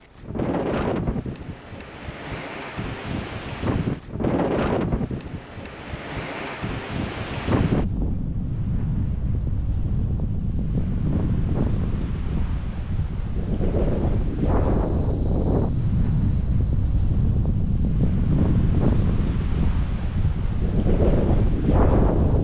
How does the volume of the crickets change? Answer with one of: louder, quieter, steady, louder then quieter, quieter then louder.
louder then quieter.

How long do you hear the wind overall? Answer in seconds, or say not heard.
22 s.